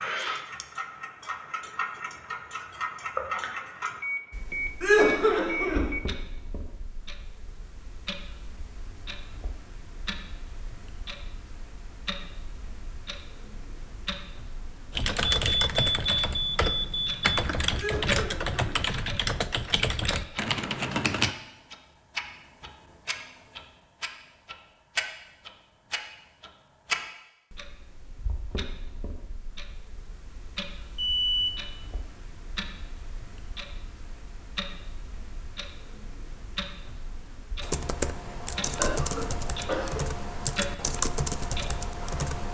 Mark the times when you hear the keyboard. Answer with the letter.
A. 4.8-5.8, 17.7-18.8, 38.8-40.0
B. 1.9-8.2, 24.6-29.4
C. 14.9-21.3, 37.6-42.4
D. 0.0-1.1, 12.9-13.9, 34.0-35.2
C.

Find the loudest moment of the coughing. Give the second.
5 s.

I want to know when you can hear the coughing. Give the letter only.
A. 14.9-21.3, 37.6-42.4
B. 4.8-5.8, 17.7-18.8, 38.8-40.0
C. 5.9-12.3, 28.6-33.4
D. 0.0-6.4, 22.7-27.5
B.